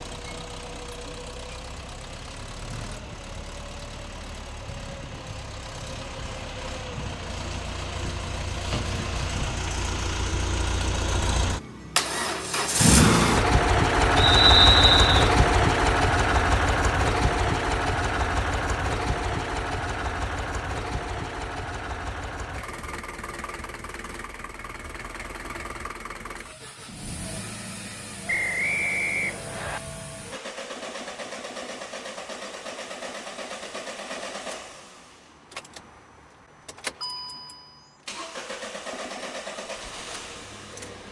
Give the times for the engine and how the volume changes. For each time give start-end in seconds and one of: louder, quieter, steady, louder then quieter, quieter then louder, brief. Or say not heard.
0.0-41.0 louder then quieter.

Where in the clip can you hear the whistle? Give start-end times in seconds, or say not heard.
14.2-15.3, 28.2-29.8.